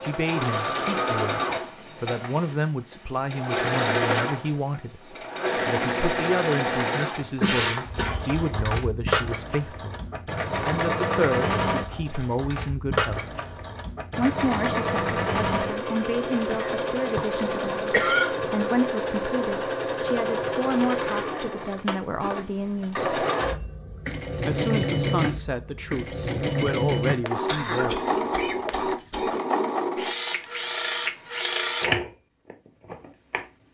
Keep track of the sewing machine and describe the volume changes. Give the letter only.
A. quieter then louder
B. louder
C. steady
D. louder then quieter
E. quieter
C.